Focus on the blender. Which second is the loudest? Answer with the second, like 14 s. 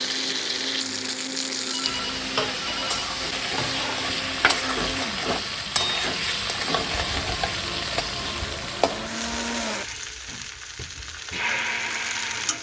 12 s.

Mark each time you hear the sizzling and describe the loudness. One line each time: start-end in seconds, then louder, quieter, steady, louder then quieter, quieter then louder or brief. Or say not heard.
0.0-12.5 quieter.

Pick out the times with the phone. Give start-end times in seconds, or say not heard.
1.6-3.0.